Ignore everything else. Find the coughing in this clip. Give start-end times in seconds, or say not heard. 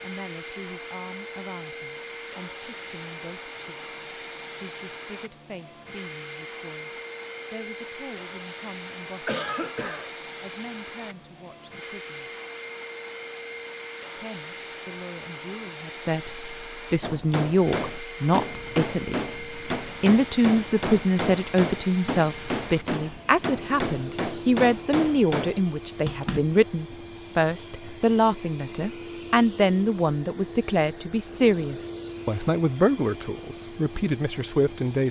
9.2-10.1.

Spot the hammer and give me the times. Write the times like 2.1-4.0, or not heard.
17.0-26.4.